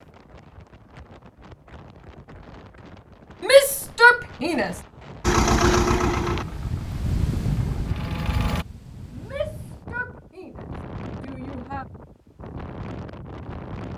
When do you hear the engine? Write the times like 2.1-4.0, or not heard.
5.2-8.7.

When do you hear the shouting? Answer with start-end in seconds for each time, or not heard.
3.4-4.8, 9.1-11.8.